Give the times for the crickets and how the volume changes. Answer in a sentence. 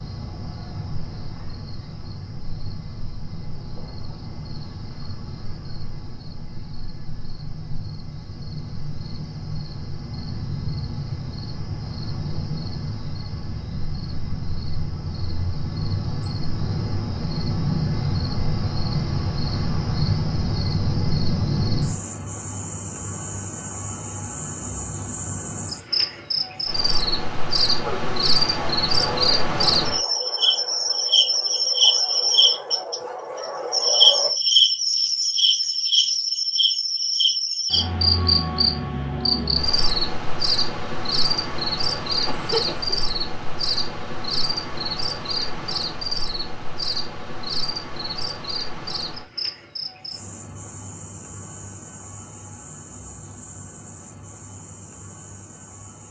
You can hear the crickets from 0.0 to 56.0 s, getting louder then quieter.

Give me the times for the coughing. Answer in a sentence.
You can hear the coughing from 42.2 to 43.0 s.